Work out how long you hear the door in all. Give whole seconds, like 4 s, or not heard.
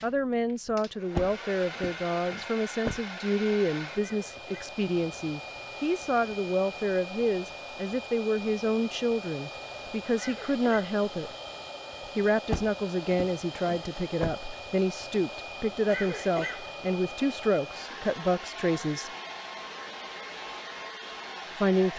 5 s.